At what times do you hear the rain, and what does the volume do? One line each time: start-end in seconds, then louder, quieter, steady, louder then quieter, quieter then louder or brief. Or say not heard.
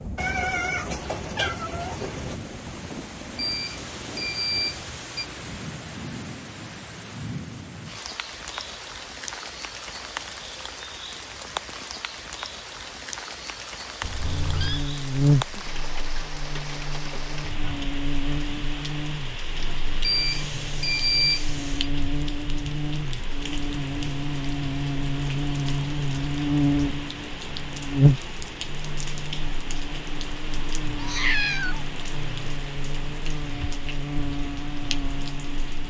0.0-35.8 steady.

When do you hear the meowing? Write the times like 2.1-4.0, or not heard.
0.1-2.4, 14.0-14.8, 30.9-31.9.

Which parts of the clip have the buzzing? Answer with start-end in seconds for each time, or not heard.
14.2-35.8.